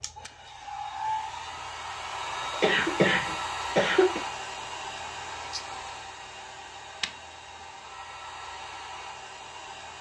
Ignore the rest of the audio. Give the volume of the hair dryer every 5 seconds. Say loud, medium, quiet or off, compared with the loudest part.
loud, medium.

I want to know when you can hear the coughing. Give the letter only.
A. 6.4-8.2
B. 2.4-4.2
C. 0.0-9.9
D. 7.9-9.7
B.